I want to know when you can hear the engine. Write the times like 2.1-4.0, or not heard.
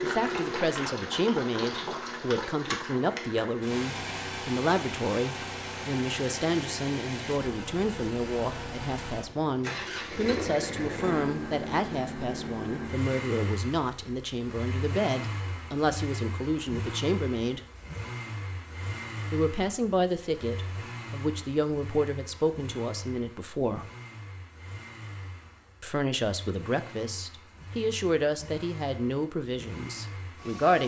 0.0-30.8.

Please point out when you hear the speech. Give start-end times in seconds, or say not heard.
0.0-17.6, 19.3-23.9, 25.8-30.8.